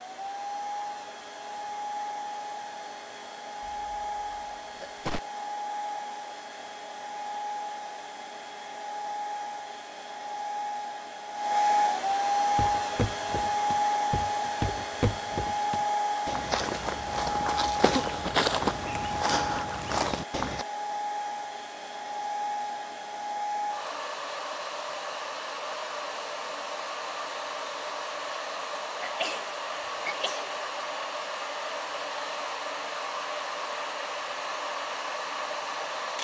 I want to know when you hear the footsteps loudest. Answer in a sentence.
The loudest moment of the footsteps is at 19 seconds.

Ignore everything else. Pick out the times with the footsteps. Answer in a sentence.
You can hear the footsteps from 12.6 to 20.6 s.